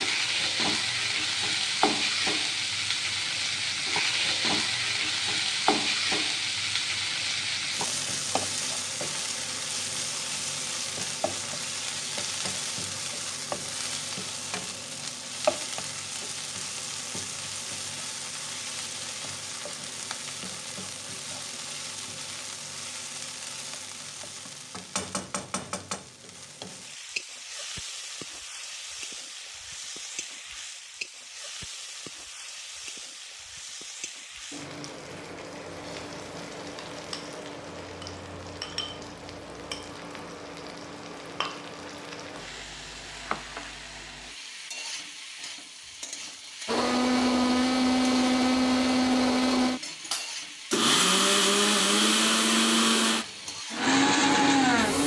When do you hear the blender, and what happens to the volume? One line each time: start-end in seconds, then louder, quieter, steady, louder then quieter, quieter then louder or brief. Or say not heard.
46.6-55.0 steady.